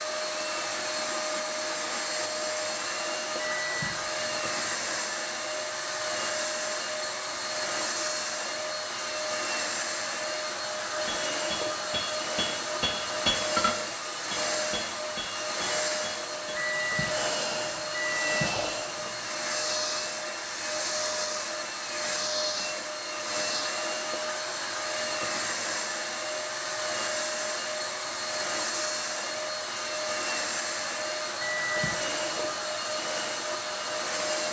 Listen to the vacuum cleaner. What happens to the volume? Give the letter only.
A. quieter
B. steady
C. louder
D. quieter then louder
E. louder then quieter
B.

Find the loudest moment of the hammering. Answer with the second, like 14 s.
13 s.